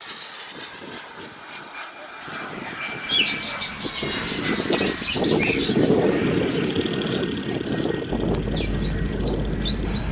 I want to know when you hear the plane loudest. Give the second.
6 s.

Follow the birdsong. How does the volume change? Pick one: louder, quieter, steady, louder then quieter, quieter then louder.
quieter then louder.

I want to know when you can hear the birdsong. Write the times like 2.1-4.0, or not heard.
3.0-10.0.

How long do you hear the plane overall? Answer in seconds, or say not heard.
10 s.